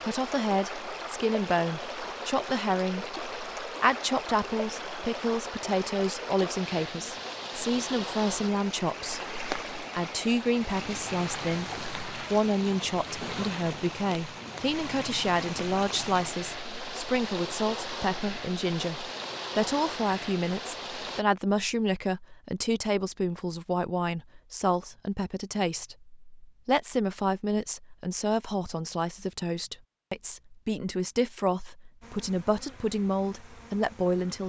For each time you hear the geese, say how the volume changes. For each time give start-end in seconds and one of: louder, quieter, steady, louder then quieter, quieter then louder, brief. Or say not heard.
not heard.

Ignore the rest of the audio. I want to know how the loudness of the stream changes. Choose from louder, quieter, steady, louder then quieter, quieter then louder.
steady.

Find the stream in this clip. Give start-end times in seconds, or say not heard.
0.0-21.2.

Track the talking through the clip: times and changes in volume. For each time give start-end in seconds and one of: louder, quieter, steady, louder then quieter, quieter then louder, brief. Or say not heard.
0.0-34.4 steady.